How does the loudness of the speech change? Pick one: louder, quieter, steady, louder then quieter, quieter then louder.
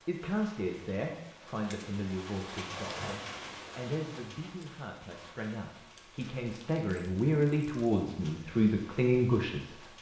quieter then louder.